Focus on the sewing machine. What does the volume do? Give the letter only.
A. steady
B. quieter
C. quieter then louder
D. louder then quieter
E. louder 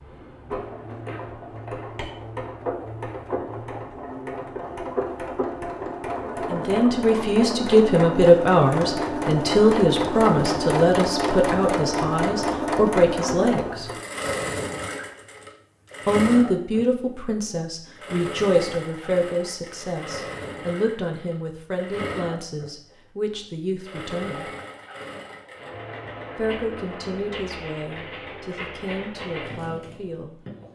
D.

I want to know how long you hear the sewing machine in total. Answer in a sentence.
The sewing machine can be heard for 31 seconds in total.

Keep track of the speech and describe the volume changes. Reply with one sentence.
The loudness of the speech goes down.